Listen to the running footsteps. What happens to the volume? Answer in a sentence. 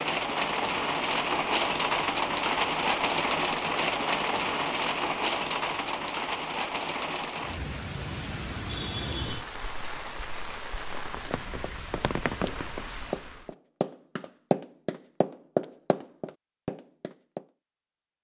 The loudness of the running footsteps goes up, then down.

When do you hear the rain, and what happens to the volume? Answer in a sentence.
You can hear the rain from 0.0 to 13.5 s, getting quieter.